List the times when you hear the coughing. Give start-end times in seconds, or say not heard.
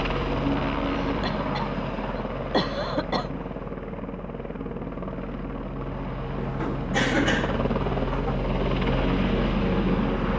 0.8-3.3, 6.3-8.3.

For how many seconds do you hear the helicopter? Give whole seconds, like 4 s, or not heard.
10 s.